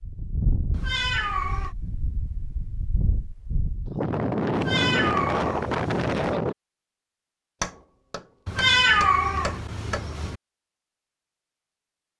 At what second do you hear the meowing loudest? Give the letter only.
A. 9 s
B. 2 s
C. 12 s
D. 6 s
A.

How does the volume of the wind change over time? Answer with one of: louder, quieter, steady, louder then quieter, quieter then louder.
quieter then louder.